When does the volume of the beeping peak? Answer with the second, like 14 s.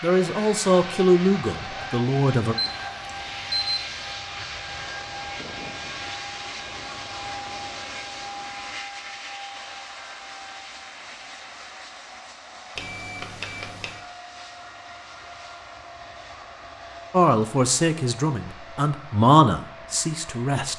4 s.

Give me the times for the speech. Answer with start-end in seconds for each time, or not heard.
0.0-2.5, 17.1-20.7.